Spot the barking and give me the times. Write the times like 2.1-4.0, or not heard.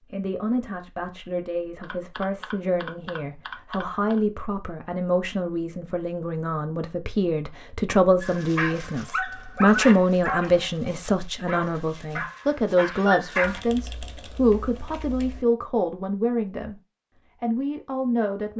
8.2-13.6.